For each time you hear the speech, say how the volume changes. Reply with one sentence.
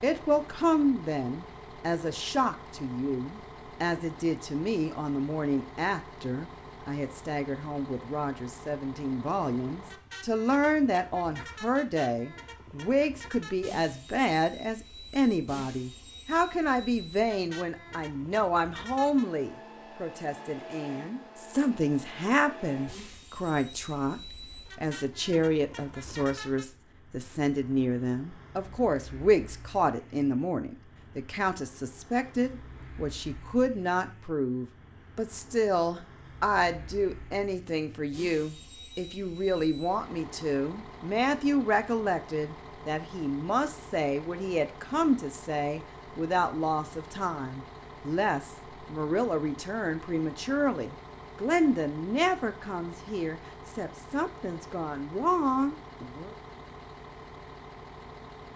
You can hear the speech from 0.0 to 56.4 s, at a steady volume.